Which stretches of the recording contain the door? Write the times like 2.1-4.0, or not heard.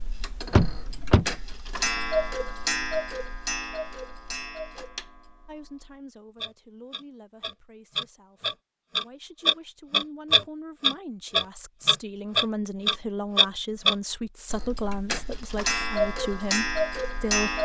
0.5-1.2.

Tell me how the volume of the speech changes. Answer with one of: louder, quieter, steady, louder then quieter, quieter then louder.
louder.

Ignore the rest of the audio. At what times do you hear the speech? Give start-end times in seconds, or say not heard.
5.5-17.6.